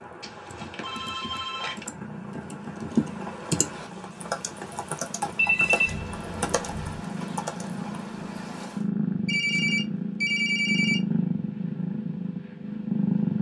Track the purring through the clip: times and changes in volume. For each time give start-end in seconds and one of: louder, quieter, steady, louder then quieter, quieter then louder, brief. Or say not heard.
1.9-13.3 louder.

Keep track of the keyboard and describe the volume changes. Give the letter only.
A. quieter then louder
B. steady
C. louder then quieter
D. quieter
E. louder
C.